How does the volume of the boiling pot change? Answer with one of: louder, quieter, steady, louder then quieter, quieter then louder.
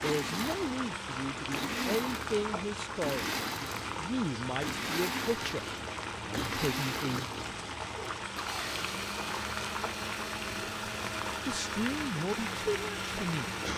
steady.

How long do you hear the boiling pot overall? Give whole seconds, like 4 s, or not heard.
14 s.